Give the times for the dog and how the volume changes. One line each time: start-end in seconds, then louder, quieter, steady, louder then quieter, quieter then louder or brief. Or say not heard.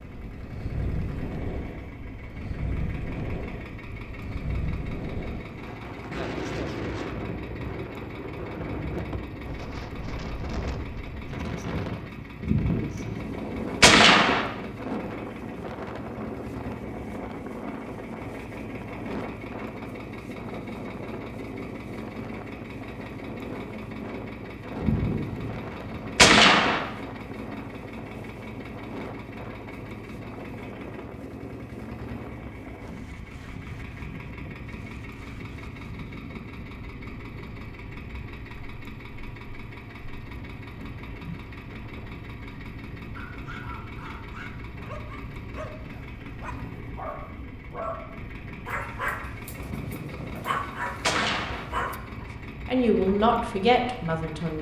43.1-52.0 louder.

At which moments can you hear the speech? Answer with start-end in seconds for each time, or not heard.
52.2-54.5.